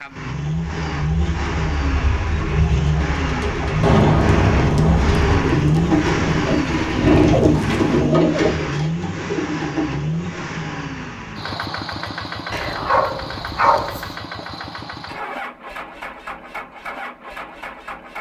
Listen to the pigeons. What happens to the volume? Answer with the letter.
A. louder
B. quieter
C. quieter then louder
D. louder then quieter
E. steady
D.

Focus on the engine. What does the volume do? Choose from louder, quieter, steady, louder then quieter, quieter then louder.
quieter.